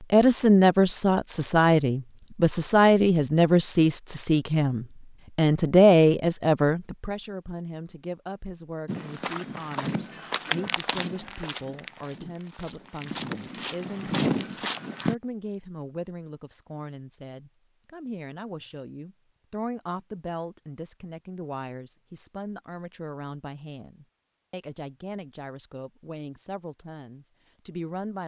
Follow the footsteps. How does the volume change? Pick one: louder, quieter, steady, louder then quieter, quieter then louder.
quieter then louder.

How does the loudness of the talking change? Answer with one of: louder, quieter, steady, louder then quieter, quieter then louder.
quieter.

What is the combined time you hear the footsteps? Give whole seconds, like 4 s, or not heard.
6 s.